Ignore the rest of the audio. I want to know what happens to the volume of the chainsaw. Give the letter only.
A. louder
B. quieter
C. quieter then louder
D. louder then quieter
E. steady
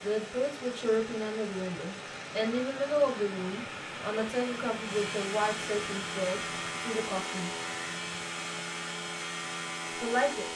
A.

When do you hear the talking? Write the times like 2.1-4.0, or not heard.
0.0-7.5, 10.0-10.5.